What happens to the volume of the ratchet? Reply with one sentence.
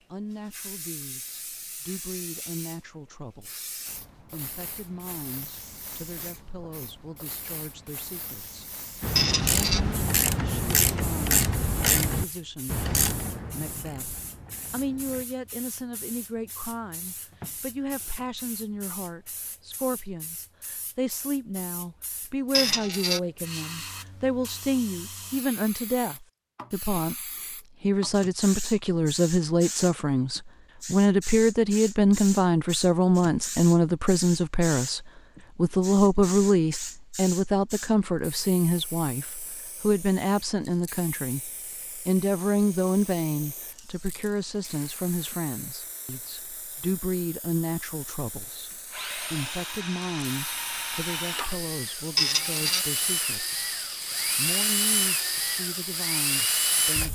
The loudness of the ratchet goes down.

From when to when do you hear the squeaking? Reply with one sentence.
You can hear the squeaking from 9.2 to 9.8 s, from 22.5 to 23.2 s and from 52.1 to 52.9 s.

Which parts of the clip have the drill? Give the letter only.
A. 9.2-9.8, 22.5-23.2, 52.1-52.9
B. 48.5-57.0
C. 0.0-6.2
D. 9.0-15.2
B.